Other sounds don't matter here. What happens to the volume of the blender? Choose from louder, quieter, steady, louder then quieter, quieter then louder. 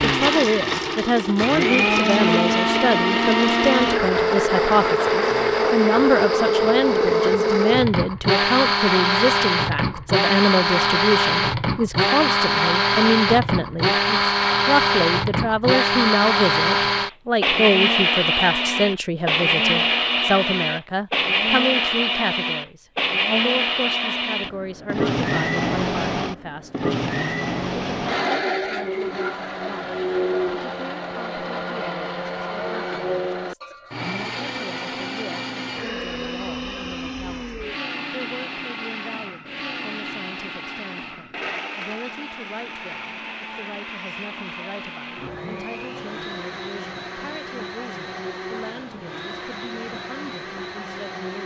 quieter.